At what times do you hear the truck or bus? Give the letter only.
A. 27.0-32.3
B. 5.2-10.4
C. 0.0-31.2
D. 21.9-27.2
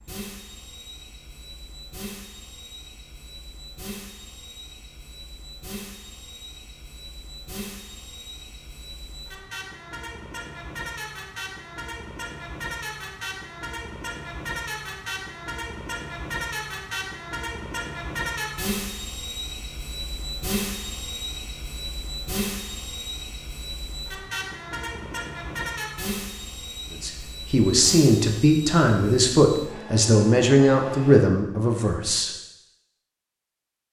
C.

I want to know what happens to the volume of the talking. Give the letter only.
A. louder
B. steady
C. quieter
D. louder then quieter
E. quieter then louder
B.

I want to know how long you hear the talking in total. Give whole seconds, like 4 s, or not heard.
5 s.